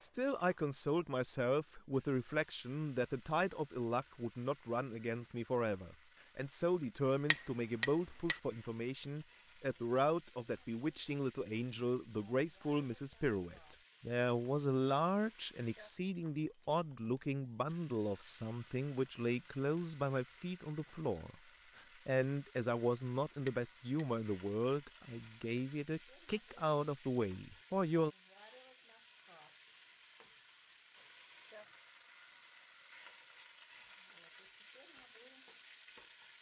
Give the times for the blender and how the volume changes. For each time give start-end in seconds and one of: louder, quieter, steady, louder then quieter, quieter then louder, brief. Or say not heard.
not heard.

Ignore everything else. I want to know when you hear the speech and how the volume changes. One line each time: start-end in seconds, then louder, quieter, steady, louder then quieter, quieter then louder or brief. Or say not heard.
0.0-28.1 steady.